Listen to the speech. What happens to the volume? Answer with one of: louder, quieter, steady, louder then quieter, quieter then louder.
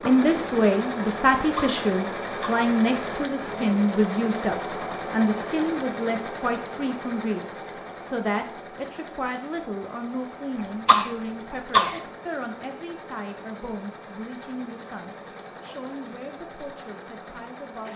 quieter.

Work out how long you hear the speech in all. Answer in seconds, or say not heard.
18 s.